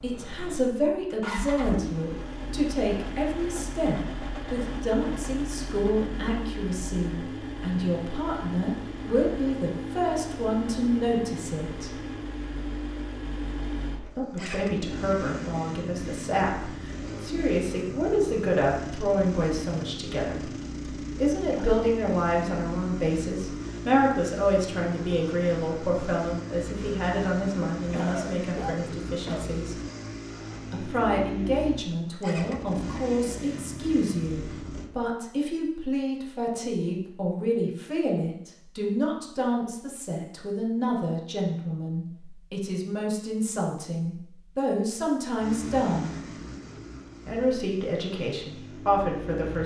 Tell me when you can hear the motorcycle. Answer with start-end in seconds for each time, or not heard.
0.0-34.9, 45.4-49.6.